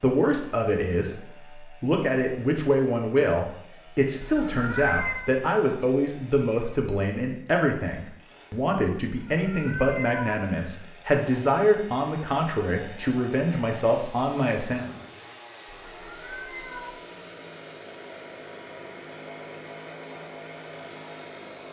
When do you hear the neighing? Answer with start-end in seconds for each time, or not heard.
not heard.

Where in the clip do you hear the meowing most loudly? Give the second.
5 s.